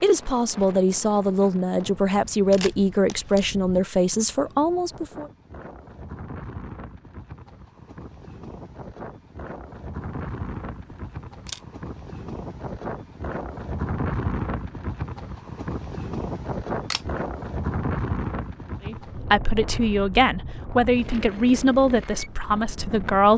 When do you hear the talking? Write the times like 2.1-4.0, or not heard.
0.0-5.2, 18.9-23.3.